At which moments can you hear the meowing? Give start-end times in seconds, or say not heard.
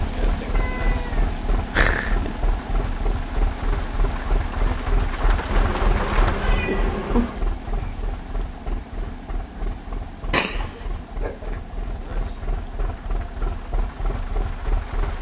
0.6-2.4, 5.5-7.5, 10.3-11.4.